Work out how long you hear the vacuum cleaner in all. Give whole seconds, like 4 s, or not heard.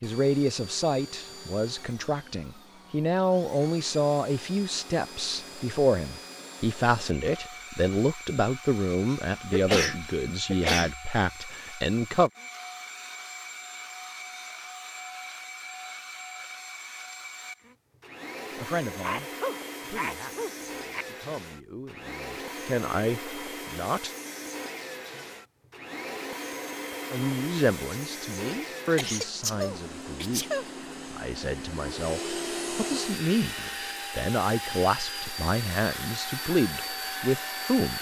38 s.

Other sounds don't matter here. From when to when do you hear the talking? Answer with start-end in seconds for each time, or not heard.
0.0-12.3, 18.6-24.1, 27.1-37.9.